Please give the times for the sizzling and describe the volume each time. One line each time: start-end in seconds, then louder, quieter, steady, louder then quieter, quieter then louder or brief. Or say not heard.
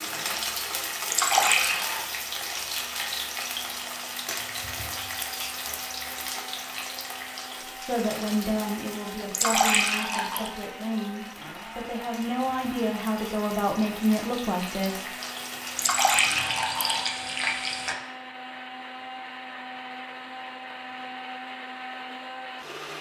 0.0-17.9 quieter then louder.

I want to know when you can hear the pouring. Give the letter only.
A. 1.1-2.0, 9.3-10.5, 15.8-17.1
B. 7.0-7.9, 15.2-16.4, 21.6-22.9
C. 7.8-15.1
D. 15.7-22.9
A.